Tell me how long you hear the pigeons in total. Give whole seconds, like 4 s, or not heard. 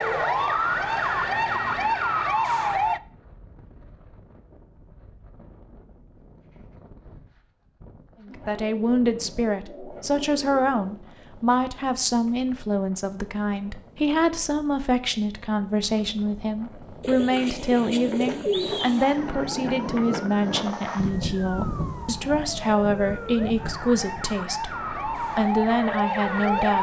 5 s.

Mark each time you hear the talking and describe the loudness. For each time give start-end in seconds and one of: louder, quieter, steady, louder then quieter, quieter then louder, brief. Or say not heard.
8.2-26.7 steady.